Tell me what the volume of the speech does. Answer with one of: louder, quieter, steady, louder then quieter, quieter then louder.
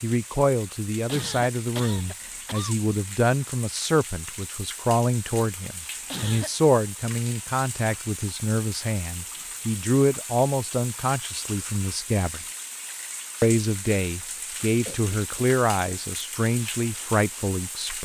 steady.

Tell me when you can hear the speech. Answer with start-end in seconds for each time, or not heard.
0.0-12.4, 13.4-17.9.